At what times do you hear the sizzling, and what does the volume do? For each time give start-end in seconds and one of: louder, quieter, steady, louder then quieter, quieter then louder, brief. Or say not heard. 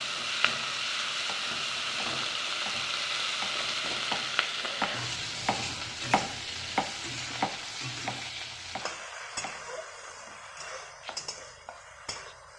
0.0-12.5 quieter.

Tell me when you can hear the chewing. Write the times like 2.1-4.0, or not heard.
not heard.